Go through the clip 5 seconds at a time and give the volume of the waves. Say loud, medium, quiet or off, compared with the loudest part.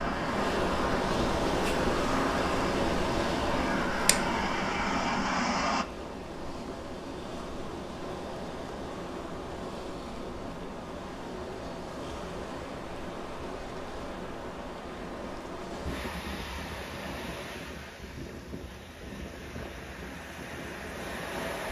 loud, medium, medium, medium, medium.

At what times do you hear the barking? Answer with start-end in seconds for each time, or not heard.
not heard.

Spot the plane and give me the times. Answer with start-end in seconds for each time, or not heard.
0.0-5.8.